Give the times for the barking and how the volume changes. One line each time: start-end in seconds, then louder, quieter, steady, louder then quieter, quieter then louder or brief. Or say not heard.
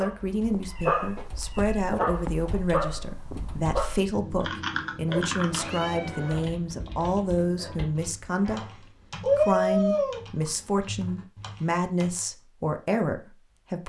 0.0-8.8 quieter.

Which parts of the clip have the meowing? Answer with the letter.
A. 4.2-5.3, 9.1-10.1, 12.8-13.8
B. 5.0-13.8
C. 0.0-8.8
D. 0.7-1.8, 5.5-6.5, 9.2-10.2
D.